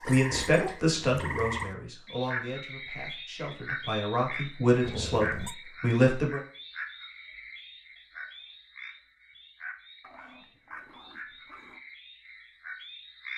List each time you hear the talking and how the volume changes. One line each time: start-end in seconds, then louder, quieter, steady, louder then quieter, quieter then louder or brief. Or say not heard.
0.1-6.4 quieter then louder.